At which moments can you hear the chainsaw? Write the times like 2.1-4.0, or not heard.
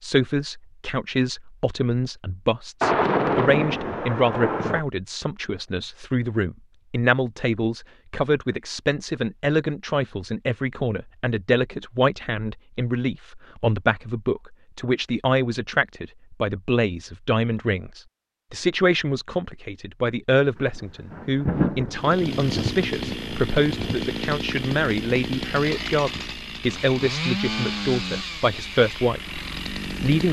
21.9-30.2.